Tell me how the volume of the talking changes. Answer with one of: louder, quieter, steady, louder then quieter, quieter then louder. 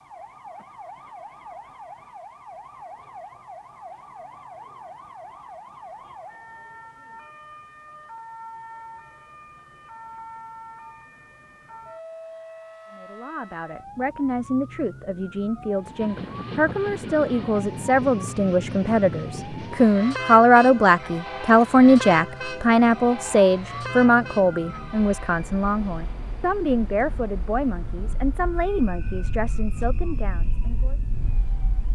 louder then quieter.